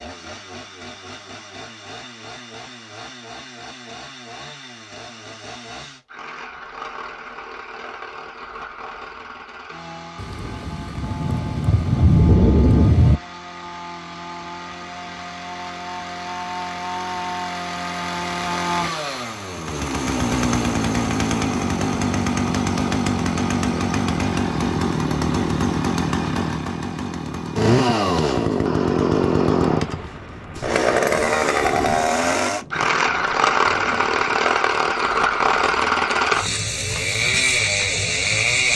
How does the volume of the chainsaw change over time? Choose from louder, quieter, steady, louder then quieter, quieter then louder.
louder.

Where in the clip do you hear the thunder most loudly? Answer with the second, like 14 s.
12 s.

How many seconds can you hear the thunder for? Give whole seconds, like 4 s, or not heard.
8 s.